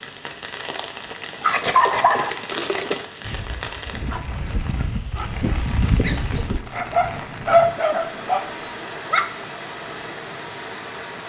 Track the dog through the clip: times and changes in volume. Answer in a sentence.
The dog can be heard from 1.1 to 9.3 s, getting quieter then louder.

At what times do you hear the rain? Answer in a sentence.
You can hear the rain from 0.0 to 11.2 s.